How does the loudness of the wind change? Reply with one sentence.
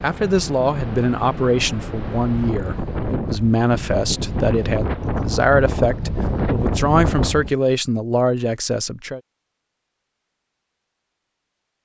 The volume of the wind goes up.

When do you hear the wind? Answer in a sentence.
You can hear the wind from 0.0 to 7.5 s.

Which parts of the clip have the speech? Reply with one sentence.
You can hear the speech from 0.0 to 9.2 s.